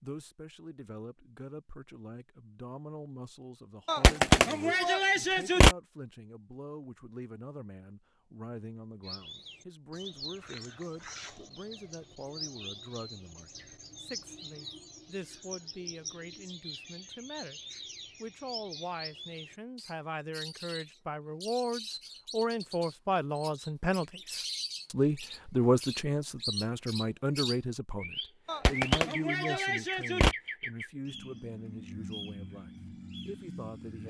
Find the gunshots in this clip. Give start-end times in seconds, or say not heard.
3.9-5.8, 28.4-30.4.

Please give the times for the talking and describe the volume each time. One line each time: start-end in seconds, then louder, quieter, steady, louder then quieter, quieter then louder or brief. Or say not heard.
0.0-34.0 louder then quieter.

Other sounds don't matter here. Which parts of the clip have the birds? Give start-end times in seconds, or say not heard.
9.0-34.0.